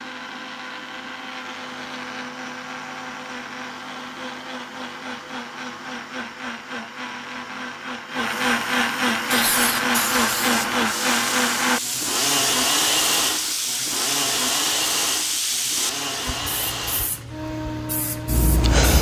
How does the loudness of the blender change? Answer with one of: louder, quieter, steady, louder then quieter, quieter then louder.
louder then quieter.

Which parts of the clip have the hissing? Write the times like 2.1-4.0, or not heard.
9.3-18.9.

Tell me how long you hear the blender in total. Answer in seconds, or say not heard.
19 s.